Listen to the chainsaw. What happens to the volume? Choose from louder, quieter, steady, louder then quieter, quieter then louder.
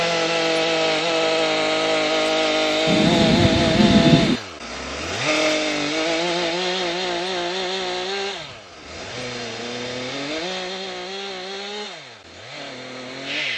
quieter.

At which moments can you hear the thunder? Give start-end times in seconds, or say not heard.
2.9-4.4.